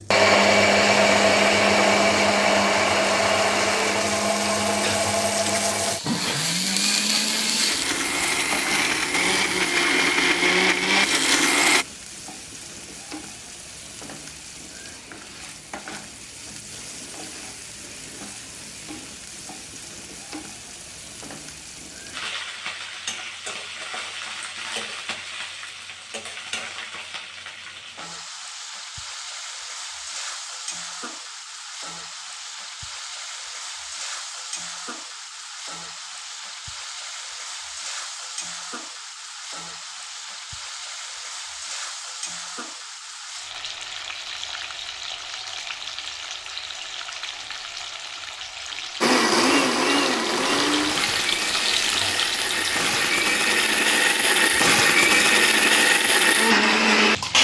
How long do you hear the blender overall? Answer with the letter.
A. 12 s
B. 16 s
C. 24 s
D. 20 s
D.